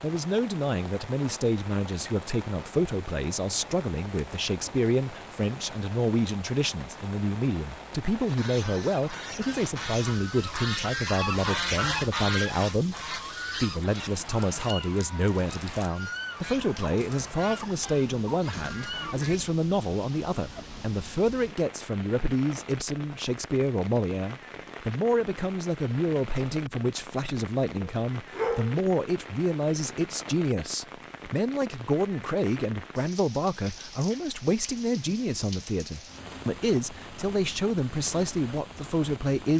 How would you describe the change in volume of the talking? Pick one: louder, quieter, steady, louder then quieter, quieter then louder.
steady.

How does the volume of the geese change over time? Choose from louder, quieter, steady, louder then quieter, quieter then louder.
louder then quieter.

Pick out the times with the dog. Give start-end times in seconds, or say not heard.
27.8-28.8.